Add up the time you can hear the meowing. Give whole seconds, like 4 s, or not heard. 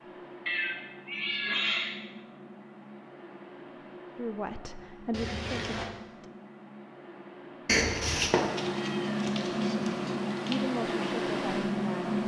4 s.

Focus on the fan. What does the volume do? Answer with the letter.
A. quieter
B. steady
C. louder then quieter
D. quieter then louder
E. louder
E.